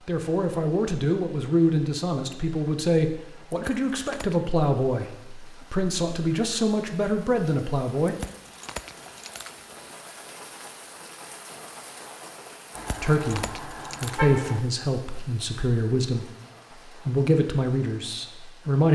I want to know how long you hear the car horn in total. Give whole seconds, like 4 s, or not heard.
2 s.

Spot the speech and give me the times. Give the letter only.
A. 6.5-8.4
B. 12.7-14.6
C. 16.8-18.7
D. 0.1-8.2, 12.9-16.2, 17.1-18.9
D.